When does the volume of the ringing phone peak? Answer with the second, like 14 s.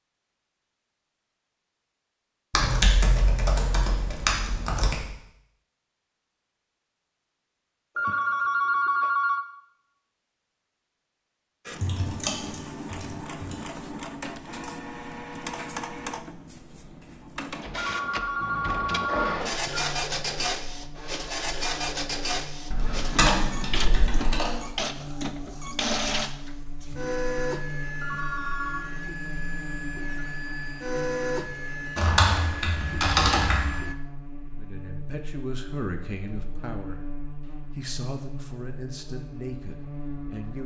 9 s.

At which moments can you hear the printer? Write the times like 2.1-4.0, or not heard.
11.7-34.0.